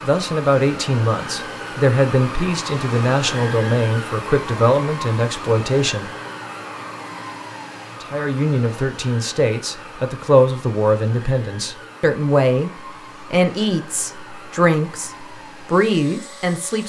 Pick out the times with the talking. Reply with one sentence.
The talking can be heard from 0.0 to 6.1 s and from 8.0 to 16.8 s.